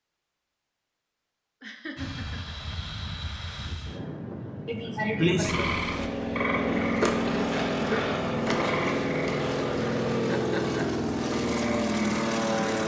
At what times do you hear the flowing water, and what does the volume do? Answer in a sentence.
The flowing water can't be heard in this clip.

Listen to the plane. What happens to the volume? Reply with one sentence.
The volume of the plane goes up.